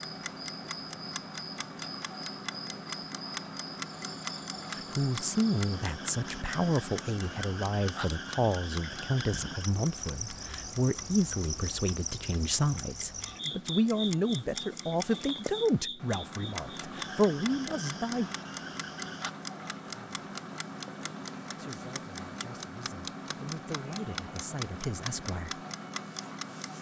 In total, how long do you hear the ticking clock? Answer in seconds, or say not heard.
27 s.